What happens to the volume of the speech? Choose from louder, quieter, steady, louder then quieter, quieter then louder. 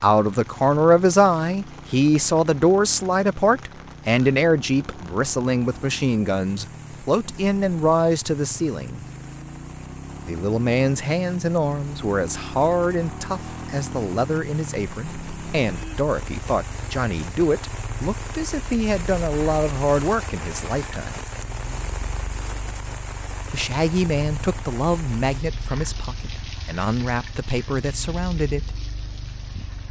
quieter.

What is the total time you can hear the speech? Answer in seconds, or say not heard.
25 s.